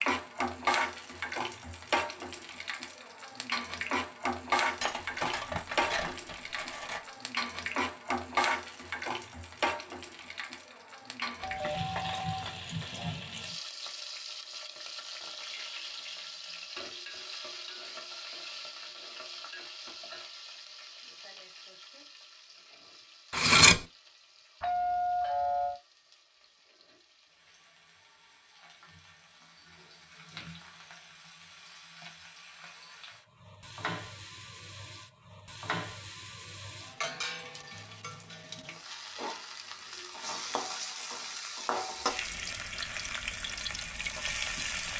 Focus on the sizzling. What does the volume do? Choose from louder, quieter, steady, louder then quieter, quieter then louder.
quieter then louder.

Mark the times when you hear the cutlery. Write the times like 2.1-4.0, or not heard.
4.8-7.0, 23.3-23.8.